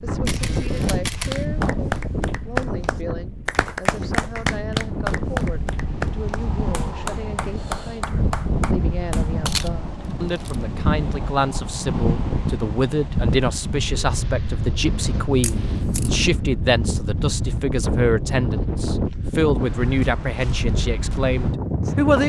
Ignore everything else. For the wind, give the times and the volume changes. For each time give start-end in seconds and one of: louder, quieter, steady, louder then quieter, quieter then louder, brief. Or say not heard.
0.0-22.2 steady.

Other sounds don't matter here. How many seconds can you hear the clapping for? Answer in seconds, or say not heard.
8 s.